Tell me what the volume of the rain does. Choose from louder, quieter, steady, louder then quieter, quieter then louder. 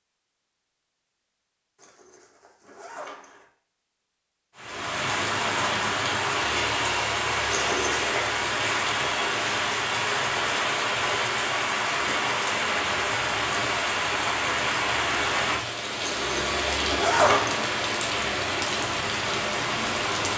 steady.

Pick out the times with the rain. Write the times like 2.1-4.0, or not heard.
4.5-20.3.